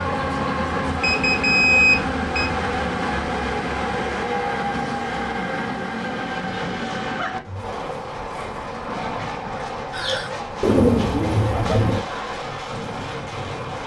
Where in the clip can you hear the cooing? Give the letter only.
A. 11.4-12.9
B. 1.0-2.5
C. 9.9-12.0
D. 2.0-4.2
C.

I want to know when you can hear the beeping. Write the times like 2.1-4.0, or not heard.
1.0-2.5.